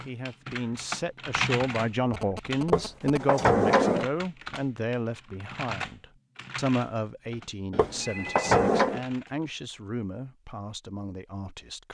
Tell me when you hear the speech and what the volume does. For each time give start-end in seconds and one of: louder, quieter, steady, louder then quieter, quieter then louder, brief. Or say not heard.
0.0-11.8 quieter.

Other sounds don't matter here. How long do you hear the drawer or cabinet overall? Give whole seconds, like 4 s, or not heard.
3 s.